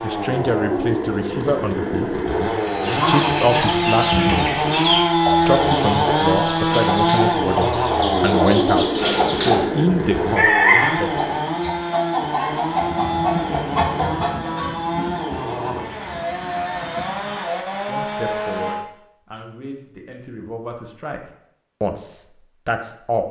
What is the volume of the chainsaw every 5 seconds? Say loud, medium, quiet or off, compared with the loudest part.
loud, loud, medium, medium, off.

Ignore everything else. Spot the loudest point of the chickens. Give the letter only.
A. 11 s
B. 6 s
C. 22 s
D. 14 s
A.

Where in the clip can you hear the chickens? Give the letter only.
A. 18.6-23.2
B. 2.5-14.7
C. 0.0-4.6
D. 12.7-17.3
B.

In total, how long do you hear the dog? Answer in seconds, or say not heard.
not heard.